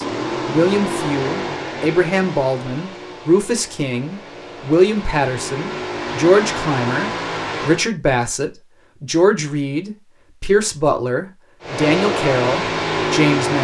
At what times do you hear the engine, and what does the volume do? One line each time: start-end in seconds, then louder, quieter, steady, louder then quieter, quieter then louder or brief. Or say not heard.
0.0-7.9 quieter then louder
11.6-13.5 brief.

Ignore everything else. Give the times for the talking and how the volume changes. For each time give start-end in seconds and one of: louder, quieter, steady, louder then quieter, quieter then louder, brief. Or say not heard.
0.0-13.5 steady.